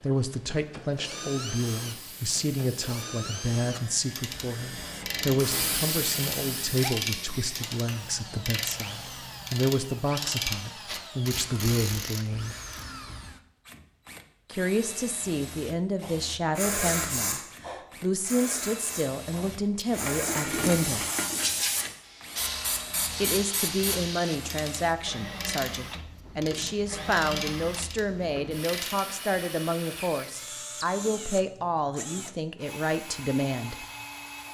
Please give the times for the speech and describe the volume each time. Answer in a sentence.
The speech can be heard from 0.0 to 12.6 s, at a steady volume; from 14.5 to 21.1 s, at a steady volume; and from 23.2 to 33.8 s, at a steady volume.